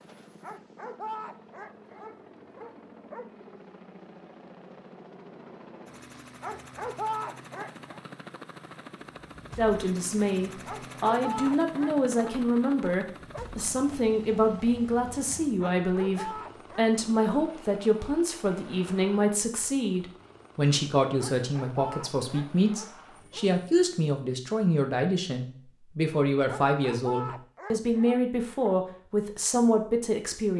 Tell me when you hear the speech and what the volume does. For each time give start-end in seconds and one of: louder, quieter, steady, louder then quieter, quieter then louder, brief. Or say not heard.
9.6-30.5 steady.